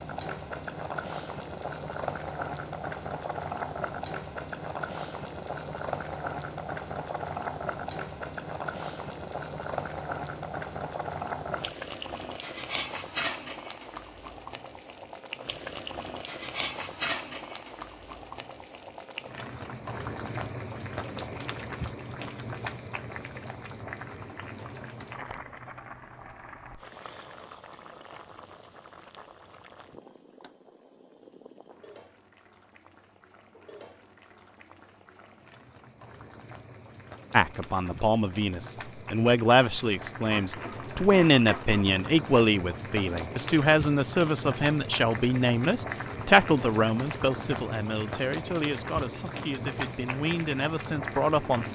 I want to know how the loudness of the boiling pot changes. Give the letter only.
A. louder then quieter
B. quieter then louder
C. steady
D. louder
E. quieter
B.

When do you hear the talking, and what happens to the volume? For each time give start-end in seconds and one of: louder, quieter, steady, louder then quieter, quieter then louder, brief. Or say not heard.
37.3-51.6 quieter.